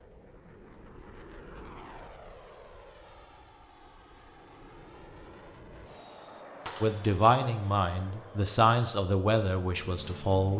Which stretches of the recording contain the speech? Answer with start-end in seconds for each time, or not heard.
6.8-10.5.